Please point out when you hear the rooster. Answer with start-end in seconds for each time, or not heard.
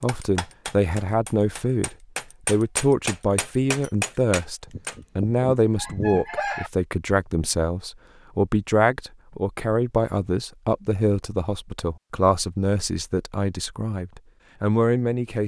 4.7-6.7.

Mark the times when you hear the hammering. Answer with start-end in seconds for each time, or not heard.
0.0-5.0.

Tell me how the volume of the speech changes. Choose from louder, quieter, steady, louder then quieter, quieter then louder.
steady.